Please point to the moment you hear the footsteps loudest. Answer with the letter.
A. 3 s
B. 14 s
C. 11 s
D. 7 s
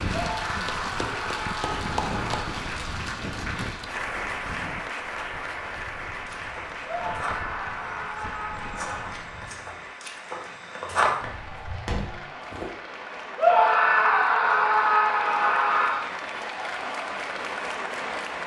C.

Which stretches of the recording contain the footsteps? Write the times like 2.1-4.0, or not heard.
6.2-12.7.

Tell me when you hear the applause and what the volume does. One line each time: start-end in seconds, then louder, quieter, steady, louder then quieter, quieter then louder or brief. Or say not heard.
0.0-18.4 quieter then louder.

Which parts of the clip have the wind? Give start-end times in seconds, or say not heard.
0.0-9.3.